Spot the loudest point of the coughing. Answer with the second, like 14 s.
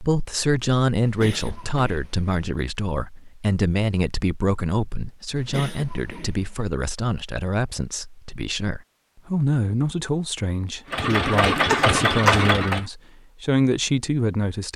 12 s.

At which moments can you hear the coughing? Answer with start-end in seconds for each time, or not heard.
1.0-2.3, 5.3-6.7, 11.1-12.4.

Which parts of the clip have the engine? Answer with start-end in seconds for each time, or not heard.
10.8-12.8.